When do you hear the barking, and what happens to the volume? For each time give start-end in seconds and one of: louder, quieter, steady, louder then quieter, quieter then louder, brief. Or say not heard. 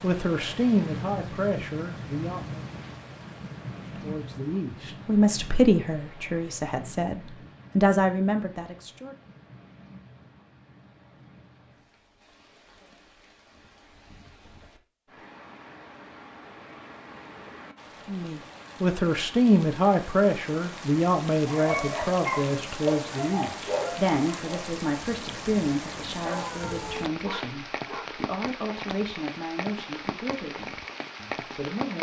21.4-28.1 quieter then louder.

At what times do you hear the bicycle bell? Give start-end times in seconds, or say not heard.
not heard.